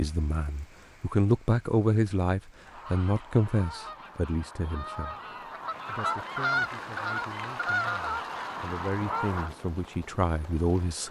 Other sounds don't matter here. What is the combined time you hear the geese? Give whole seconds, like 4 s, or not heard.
7 s.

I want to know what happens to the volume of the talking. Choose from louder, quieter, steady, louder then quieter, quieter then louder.
quieter then louder.